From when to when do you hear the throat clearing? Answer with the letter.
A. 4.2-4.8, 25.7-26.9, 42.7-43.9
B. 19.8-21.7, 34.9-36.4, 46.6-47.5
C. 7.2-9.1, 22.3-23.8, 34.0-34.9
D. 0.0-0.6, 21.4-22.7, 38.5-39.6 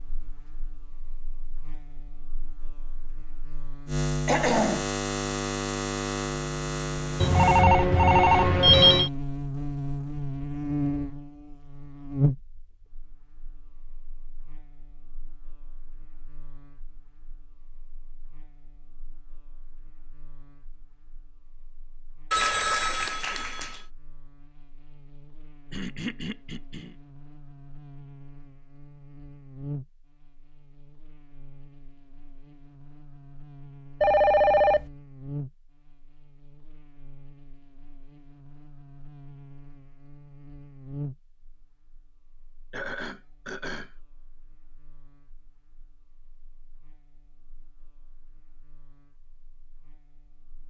A.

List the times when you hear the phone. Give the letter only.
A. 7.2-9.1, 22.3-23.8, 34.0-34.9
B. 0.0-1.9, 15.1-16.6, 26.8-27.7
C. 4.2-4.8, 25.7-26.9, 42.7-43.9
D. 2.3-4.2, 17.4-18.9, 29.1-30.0
A.